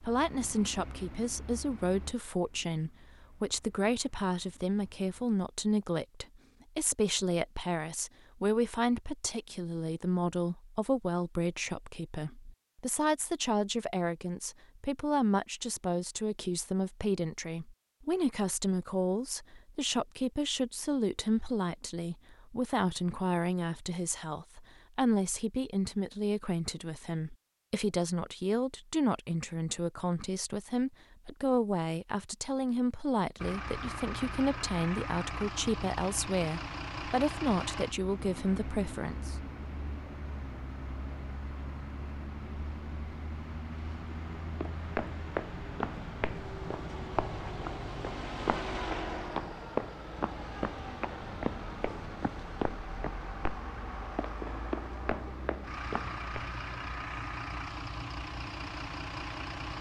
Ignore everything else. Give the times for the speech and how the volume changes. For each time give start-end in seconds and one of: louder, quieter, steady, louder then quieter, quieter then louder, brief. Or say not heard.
0.0-39.4 steady.